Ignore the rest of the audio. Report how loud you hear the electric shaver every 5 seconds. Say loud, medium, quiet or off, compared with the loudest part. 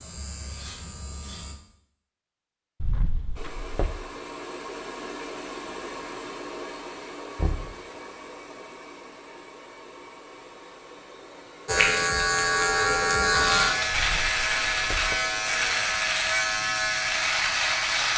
quiet, off, loud, loud.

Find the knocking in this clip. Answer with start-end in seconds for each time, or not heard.
2.8-4.0, 7.3-7.8, 13.9-15.2.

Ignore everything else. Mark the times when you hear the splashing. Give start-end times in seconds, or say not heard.
not heard.